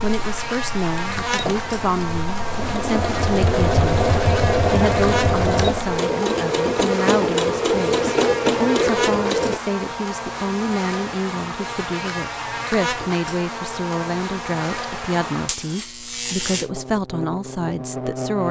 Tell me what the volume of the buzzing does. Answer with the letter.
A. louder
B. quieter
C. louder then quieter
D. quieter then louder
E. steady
E.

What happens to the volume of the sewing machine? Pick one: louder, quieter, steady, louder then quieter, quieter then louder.
louder.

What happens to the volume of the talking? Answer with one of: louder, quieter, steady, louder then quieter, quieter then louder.
steady.